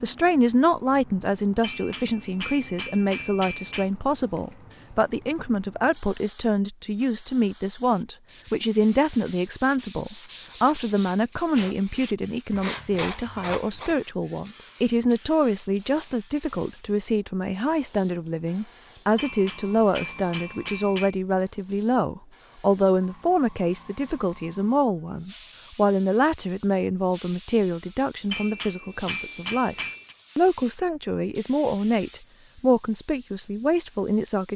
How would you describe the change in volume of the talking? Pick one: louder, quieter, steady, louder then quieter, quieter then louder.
steady.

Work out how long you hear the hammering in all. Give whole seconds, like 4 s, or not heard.
6 s.